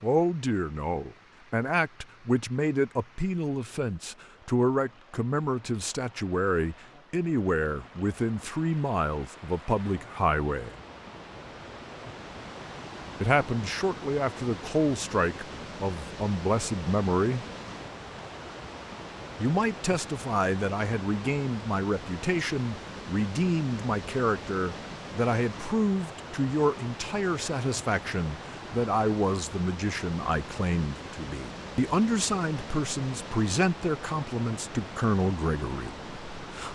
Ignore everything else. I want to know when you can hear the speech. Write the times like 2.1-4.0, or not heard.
0.0-10.7, 13.2-17.4, 19.4-36.6.